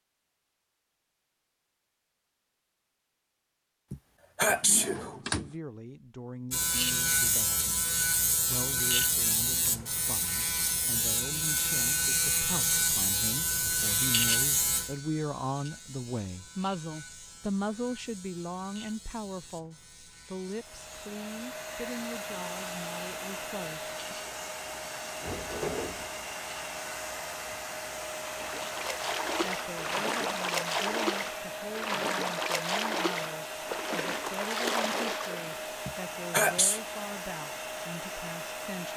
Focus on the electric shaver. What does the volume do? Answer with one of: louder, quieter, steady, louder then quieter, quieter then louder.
quieter.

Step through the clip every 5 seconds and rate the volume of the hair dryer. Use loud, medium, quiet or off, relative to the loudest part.
off, off, off, off, loud, loud, loud, loud.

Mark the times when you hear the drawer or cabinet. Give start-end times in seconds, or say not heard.
4.5-5.5, 25.2-26.1.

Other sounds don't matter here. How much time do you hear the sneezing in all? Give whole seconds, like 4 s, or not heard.
2 s.